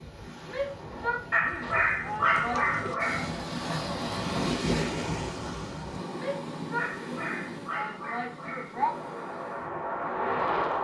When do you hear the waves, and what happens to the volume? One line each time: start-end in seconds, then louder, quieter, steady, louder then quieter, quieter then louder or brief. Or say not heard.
0.0-10.8 louder then quieter.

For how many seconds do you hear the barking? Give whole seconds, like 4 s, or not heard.
4 s.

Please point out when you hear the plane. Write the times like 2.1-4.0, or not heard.
8.7-10.8.